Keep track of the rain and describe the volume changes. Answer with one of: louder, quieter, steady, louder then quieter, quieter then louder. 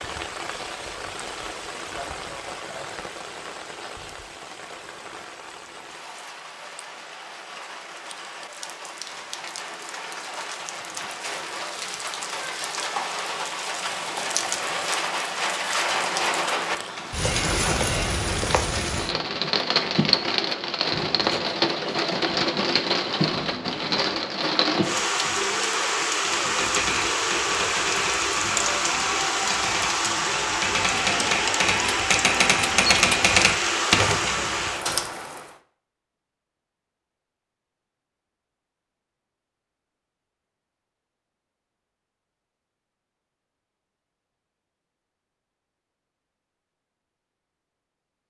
louder.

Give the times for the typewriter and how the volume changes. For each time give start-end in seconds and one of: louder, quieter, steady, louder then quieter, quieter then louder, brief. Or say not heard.
26.6-35.0 louder.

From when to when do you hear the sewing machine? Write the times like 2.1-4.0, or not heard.
not heard.